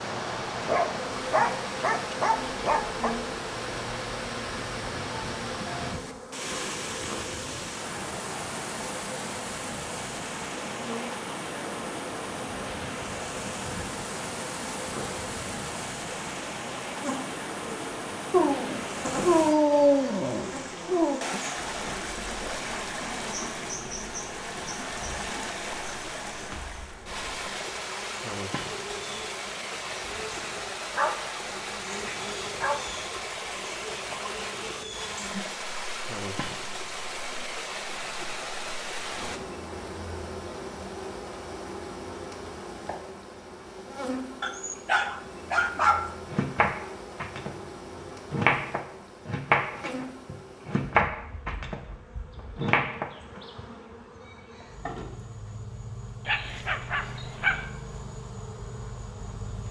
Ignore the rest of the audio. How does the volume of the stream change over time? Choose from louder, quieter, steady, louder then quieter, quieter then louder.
steady.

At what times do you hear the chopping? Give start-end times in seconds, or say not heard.
46.3-47.5, 48.3-51.8, 52.5-53.1.